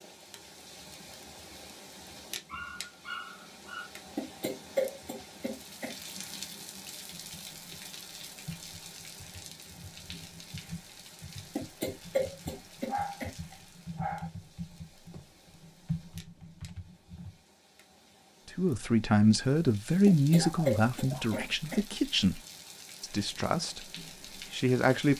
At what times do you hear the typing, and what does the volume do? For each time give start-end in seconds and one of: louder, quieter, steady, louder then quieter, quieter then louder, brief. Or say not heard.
7.2-17.4 louder.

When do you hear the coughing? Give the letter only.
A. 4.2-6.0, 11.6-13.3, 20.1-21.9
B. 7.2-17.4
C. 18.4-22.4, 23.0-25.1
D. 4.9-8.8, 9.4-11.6
A.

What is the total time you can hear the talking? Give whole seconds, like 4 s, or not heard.
6 s.